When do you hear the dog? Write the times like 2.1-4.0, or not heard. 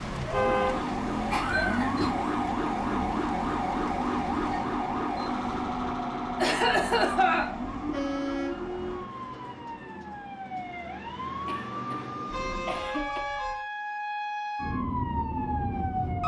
not heard.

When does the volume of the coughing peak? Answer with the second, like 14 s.
7 s.